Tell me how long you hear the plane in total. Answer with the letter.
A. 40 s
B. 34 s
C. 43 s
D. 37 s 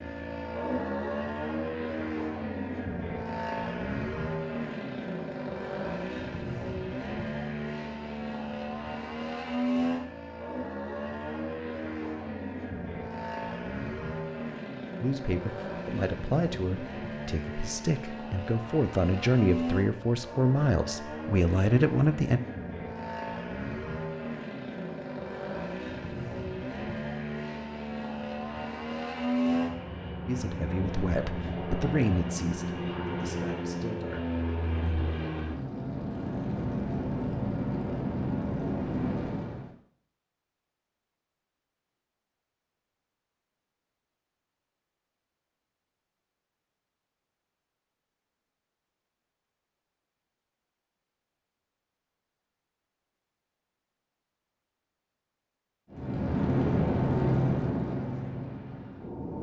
C.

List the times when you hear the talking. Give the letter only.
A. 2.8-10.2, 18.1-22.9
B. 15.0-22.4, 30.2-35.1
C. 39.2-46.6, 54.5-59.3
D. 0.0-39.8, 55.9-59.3
B.